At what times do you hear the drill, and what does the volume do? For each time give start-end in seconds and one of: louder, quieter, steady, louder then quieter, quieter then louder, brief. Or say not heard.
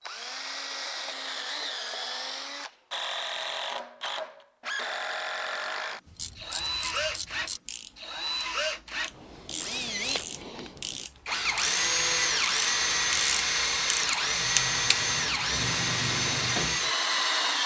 0.0-17.6 louder.